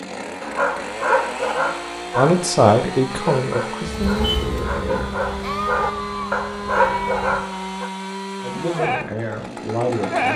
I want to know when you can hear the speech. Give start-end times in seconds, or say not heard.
2.1-5.2, 8.4-10.3.